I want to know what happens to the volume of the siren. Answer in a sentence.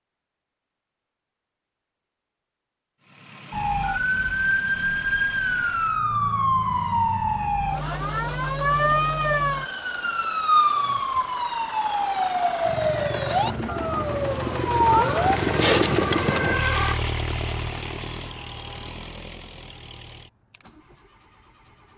The loudness of the siren stays about the same.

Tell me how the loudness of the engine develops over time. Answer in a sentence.
The volume of the engine goes up, then down.